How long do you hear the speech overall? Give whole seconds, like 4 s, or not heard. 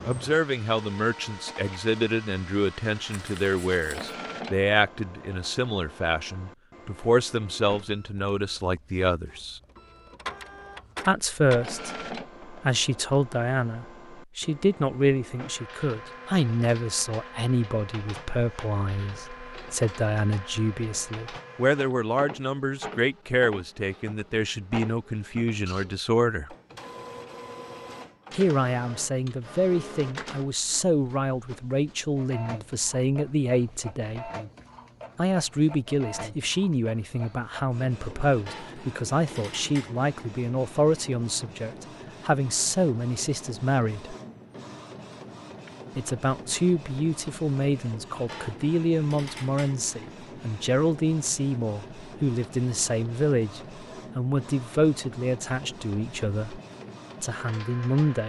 52 s.